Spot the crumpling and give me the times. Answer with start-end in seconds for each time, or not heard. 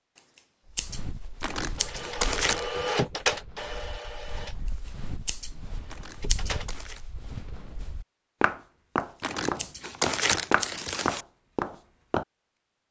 1.4-2.6, 5.8-7.0, 9.2-11.2.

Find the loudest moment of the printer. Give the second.
3 s.